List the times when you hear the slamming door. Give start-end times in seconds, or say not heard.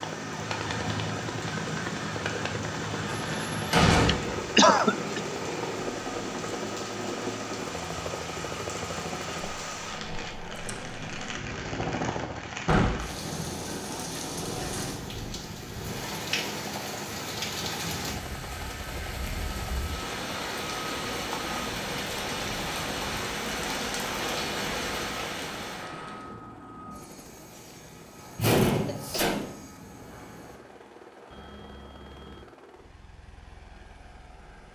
3.0-4.5, 12.7-13.1, 28.4-29.6.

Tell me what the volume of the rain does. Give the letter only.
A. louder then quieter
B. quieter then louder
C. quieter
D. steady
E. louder
E.